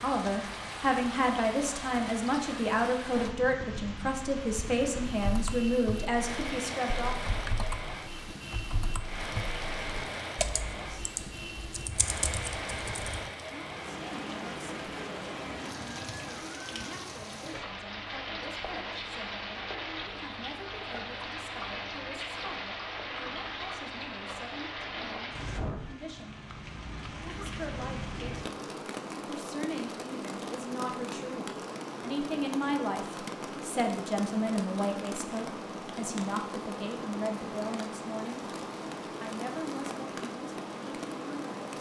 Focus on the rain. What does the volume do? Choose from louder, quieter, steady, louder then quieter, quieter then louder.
steady.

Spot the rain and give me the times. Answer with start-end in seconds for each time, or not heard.
0.0-41.7.